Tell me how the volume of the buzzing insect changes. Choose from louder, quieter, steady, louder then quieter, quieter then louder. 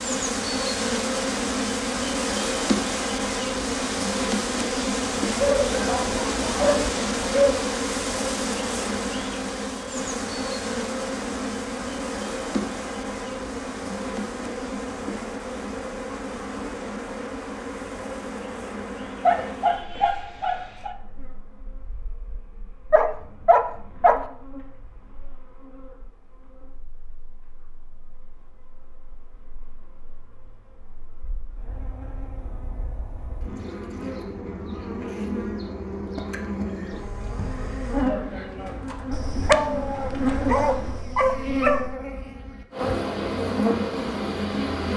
quieter then louder.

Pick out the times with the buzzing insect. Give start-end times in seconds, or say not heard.
0.0-44.9.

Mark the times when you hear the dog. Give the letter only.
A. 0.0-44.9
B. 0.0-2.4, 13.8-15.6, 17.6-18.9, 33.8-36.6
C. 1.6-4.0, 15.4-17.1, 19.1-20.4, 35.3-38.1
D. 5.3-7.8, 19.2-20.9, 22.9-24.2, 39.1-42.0
D.